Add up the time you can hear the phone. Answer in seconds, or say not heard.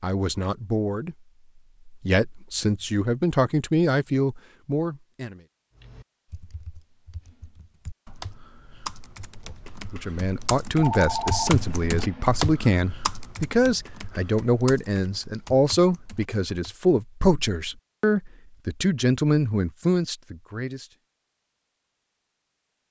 2 s.